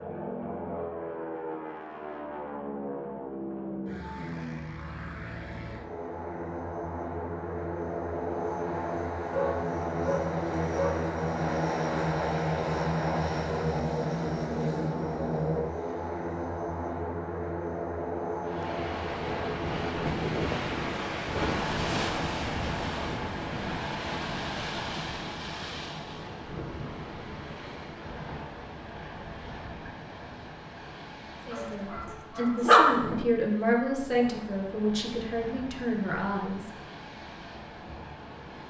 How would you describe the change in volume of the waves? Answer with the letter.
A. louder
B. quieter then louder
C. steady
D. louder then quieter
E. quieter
E.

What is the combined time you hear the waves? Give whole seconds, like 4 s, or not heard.
20 s.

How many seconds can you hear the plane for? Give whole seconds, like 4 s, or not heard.
20 s.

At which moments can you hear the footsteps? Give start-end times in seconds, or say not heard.
not heard.